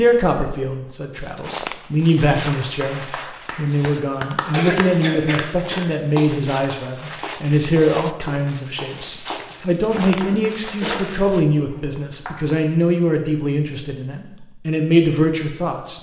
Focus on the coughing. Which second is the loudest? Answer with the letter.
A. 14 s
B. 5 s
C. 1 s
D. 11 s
B.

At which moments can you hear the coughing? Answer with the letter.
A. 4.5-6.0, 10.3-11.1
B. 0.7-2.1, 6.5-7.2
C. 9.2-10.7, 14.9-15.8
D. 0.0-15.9
A.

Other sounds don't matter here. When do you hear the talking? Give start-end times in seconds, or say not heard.
0.0-15.9.